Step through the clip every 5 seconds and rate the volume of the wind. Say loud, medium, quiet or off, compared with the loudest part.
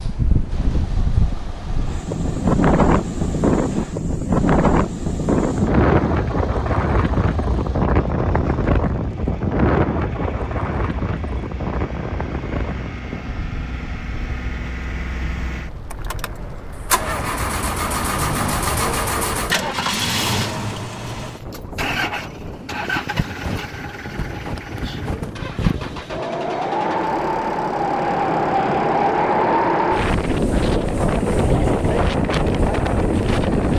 loud, loud, medium, quiet, quiet, loud, loud.